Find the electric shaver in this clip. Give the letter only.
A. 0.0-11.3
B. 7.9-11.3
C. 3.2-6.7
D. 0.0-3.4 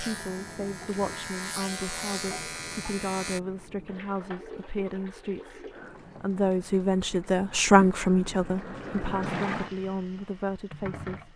D.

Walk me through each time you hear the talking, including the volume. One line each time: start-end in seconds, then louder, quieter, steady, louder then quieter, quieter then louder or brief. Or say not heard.
0.0-11.3 louder then quieter.